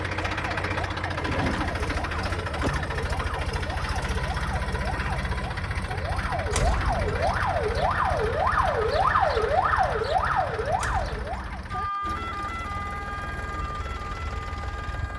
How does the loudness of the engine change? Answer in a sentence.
The loudness of the engine goes down.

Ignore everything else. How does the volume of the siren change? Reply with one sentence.
The loudness of the siren goes up, then down.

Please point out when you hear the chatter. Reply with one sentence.
The chatter can't be heard in this clip.